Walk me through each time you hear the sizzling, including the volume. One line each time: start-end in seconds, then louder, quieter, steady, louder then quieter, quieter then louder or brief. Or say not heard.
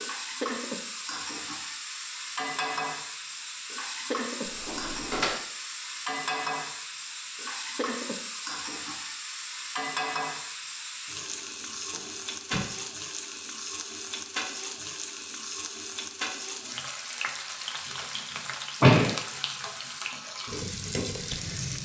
0.0-21.7 steady.